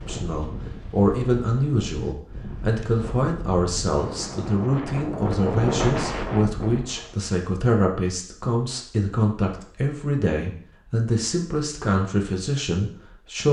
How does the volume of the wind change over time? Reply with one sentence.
The loudness of the wind goes up.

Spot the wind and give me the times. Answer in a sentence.
You can hear the wind from 0.0 to 7.2 s.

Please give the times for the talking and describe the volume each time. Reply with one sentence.
The talking can be heard from 0.1 to 13.4 s, at a steady volume.